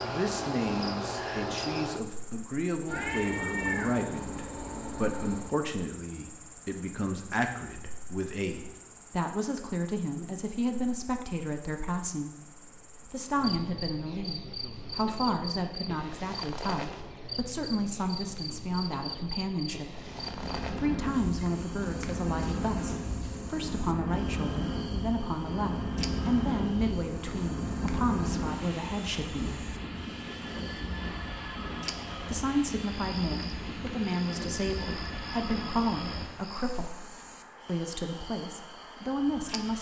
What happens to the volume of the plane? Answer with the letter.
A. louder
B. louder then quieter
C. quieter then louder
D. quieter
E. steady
D.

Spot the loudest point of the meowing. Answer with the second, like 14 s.
4 s.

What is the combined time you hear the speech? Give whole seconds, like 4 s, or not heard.
36 s.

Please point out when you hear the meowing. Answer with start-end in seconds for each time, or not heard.
2.9-5.5.